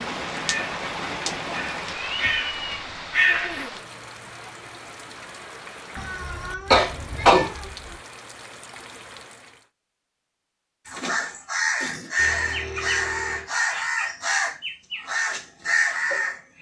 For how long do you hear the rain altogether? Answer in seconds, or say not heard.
10 s.